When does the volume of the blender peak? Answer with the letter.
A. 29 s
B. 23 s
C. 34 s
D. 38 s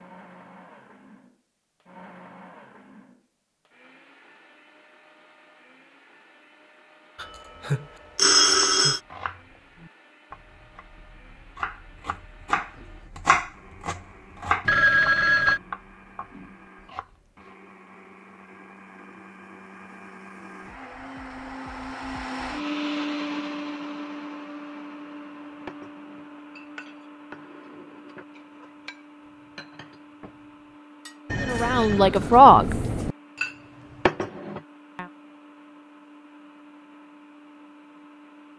B.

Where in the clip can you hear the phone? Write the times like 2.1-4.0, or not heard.
7.2-9.0, 14.7-15.6, 31.2-33.1.